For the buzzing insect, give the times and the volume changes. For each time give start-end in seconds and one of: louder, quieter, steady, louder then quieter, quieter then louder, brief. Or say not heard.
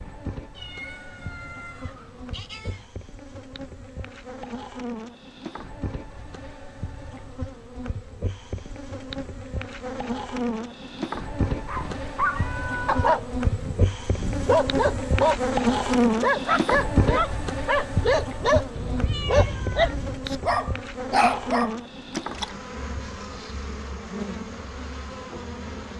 0.0-25.9 louder then quieter.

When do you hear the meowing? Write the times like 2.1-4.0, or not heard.
0.6-2.9, 11.8-13.2, 18.8-20.2.